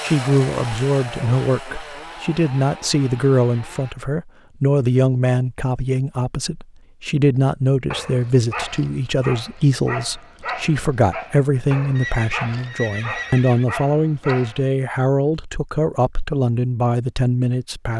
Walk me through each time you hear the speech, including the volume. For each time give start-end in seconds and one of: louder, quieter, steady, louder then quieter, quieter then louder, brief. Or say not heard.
0.0-17.9 steady.